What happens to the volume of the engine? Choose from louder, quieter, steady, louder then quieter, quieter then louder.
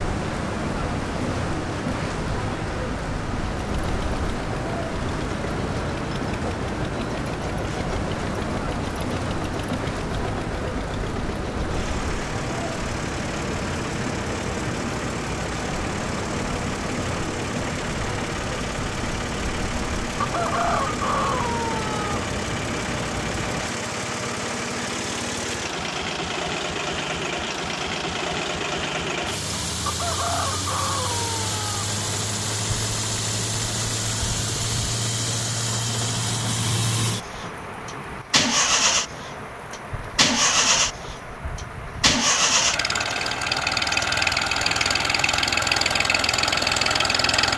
louder.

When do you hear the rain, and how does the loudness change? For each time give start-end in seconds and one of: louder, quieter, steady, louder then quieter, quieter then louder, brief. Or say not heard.
0.0-47.5 quieter.